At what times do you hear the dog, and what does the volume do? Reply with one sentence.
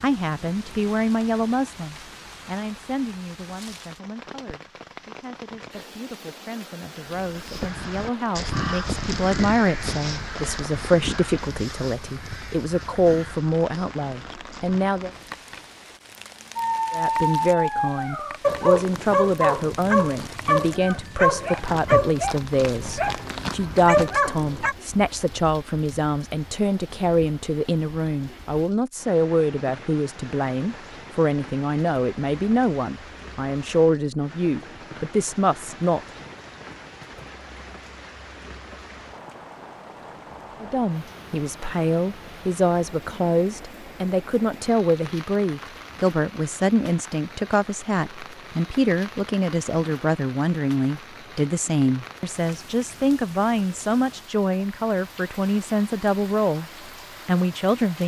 You can hear the dog from 16.6 to 24.8 s, at a steady volume.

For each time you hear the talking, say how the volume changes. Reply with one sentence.
You can hear the talking from 0.0 to 15.1 s, getting quieter then louder; from 16.9 to 36.0 s, at a steady volume; from 40.6 to 56.6 s, at a steady volume; and briefly from 57.2 to 58.0 s.